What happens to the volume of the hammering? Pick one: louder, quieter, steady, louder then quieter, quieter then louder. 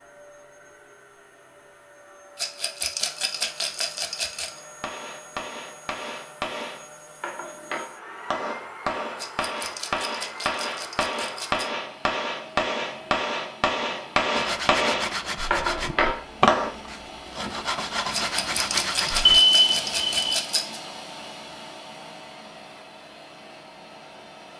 louder.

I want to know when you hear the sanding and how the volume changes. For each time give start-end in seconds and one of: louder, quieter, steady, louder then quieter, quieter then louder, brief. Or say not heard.
14.3-19.4 quieter then louder.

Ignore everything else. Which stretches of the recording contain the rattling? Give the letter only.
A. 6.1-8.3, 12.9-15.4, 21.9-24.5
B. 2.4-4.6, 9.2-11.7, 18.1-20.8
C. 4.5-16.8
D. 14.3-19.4
B.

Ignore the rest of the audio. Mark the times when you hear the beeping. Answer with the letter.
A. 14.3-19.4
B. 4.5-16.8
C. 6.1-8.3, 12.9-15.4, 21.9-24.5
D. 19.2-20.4
D.